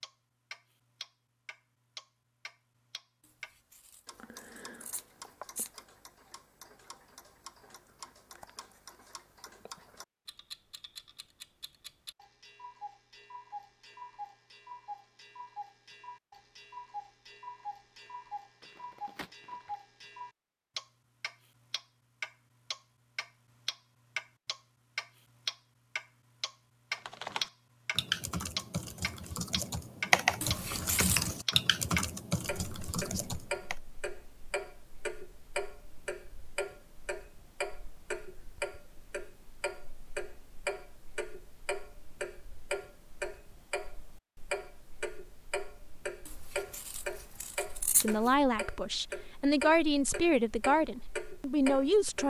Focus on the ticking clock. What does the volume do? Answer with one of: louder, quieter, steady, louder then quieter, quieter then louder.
louder.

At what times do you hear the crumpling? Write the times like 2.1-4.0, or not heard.
18.6-19.8.